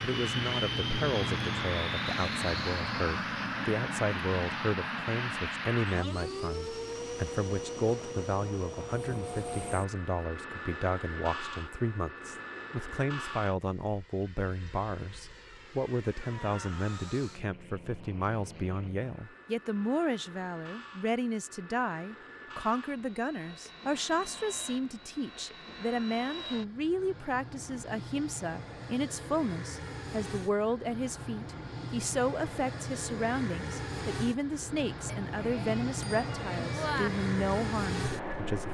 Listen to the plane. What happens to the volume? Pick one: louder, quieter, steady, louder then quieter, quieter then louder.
quieter then louder.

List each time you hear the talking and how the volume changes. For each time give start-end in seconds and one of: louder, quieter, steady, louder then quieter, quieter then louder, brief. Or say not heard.
0.0-38.6 steady.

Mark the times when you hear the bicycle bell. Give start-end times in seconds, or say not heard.
35.0-37.1.